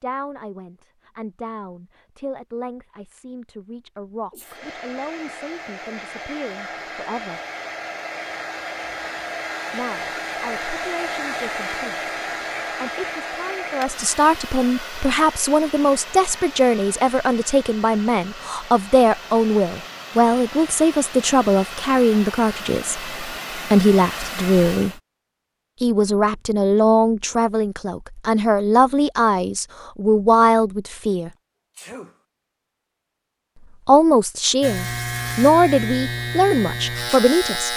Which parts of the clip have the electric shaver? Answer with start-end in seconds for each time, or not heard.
34.6-37.7.